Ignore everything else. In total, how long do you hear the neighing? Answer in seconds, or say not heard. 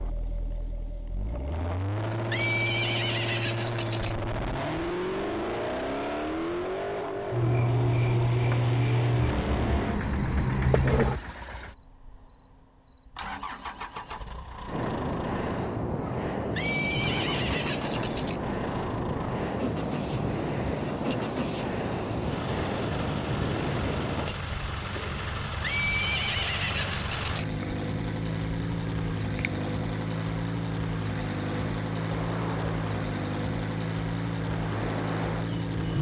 6 s.